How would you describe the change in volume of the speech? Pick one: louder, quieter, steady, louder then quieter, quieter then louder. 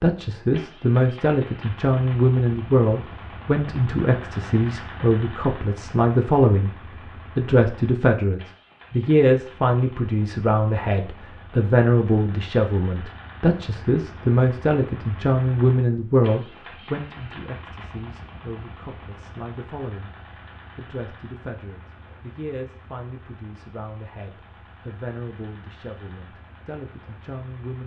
quieter.